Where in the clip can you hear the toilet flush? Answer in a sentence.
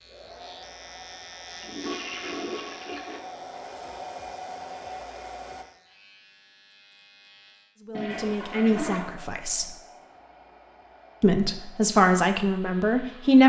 The toilet flush can be heard from 1.6 to 3.2 s and from 7.9 to 9.1 s.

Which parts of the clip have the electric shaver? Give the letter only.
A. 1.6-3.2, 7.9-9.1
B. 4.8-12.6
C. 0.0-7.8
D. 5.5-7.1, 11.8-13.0
C.